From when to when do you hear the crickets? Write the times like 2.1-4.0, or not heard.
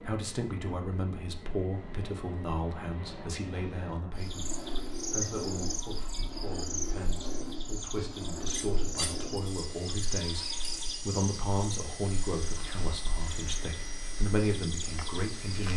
4.2-15.7.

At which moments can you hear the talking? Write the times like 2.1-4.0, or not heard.
0.0-15.7.